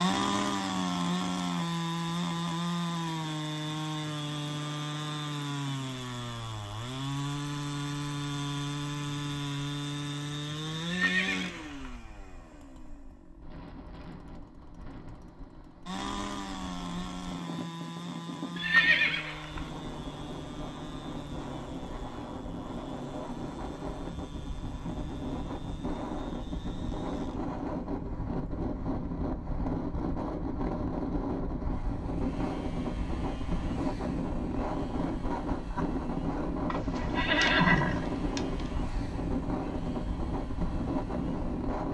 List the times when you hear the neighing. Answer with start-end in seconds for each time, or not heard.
10.8-11.9, 18.6-19.7, 36.7-38.5.